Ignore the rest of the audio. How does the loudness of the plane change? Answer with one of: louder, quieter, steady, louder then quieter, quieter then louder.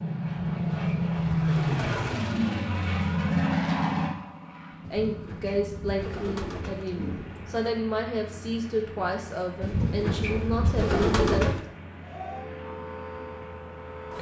quieter.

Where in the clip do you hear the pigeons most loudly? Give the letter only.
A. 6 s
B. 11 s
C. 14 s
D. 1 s
B.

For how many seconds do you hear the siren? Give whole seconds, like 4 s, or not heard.
2 s.